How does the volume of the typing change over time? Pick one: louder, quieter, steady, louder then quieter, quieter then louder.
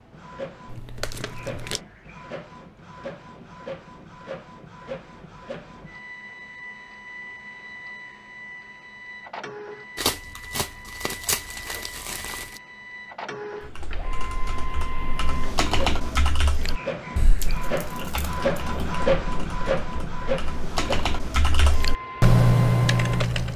quieter then louder.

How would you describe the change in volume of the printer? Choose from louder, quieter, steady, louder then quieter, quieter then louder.
louder.